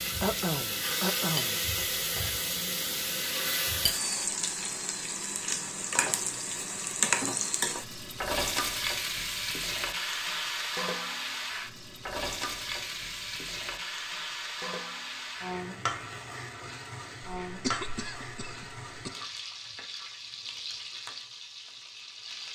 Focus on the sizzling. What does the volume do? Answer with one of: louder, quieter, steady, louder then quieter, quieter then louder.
quieter.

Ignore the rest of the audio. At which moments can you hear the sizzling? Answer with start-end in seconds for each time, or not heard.
0.0-22.5.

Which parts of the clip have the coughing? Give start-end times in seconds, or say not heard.
0.2-1.9, 17.4-19.1.